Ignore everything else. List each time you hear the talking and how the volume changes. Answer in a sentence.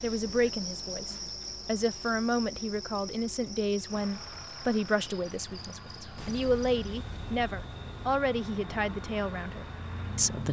You can hear the talking from 0.0 to 10.4 s, at a steady volume.